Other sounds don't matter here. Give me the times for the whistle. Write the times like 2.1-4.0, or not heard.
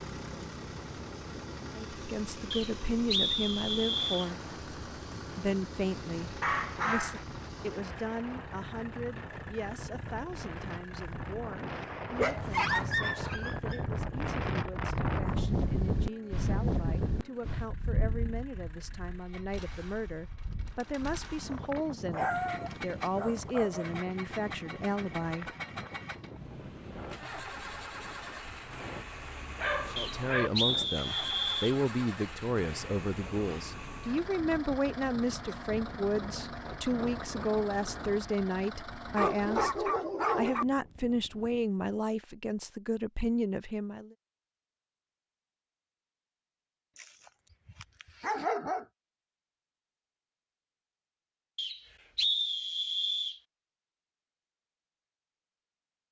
2.5-4.3, 29.9-31.8, 51.5-53.4.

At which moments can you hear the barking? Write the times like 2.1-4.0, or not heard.
6.4-7.2, 12.2-13.8, 22.1-23.9, 29.6-30.5, 39.1-40.6, 47.0-48.9.